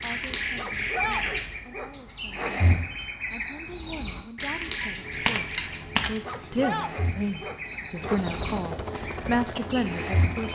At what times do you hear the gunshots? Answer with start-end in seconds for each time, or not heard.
4.8-6.7.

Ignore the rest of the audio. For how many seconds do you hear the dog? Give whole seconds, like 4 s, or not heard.
4 s.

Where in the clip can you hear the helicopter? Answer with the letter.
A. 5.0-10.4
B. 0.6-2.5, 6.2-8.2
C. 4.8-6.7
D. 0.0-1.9
A.